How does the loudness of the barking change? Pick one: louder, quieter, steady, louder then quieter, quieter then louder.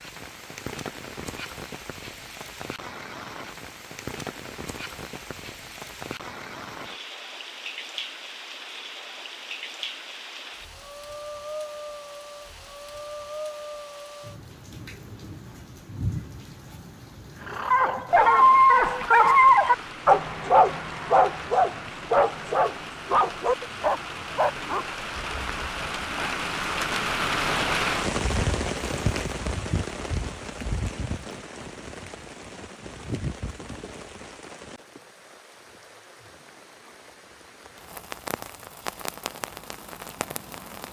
quieter.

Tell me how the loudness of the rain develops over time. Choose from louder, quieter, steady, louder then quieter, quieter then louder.
louder then quieter.